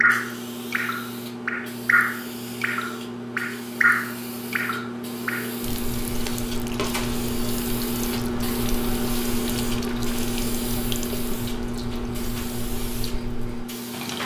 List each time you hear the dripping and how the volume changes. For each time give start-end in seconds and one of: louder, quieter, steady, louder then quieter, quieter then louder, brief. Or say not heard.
0.0-14.2 quieter.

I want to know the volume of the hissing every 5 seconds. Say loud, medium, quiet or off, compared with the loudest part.
medium, loud, loud.